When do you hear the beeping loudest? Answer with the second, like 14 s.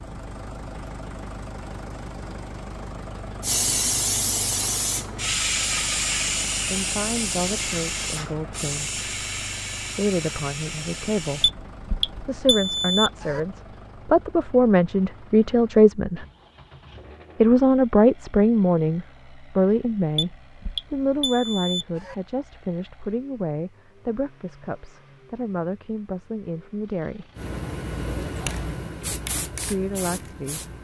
13 s.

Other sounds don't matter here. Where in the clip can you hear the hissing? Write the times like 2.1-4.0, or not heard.
3.4-11.5, 27.4-30.7.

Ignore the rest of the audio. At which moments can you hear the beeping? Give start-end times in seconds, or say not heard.
11.4-13.4, 20.1-22.1.